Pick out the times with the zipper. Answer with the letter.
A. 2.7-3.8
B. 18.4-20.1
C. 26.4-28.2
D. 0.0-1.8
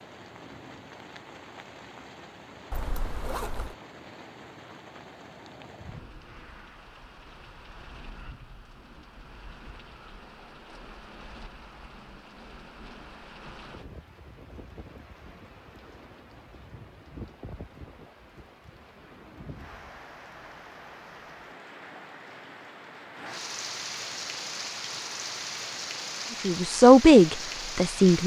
A.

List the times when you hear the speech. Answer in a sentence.
You can hear the speech from 26.4 to 28.2 s.